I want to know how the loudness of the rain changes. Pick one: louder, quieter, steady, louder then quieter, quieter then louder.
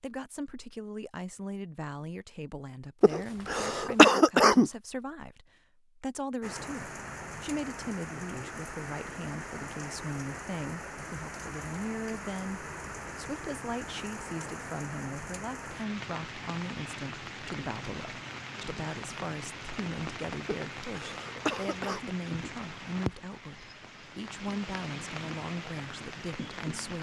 steady.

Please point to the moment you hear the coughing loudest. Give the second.
4 s.